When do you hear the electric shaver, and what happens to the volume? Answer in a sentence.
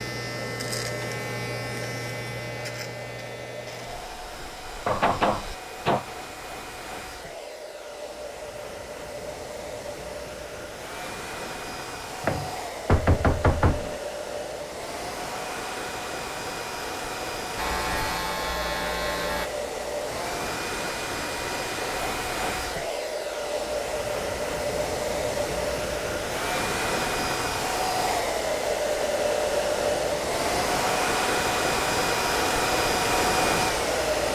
You can hear the electric shaver from 0.0 to 5.6 s, getting quieter; and briefly from 17.6 to 19.5 s.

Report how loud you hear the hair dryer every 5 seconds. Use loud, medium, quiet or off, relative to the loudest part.
quiet, quiet, medium, medium, medium, loud, loud.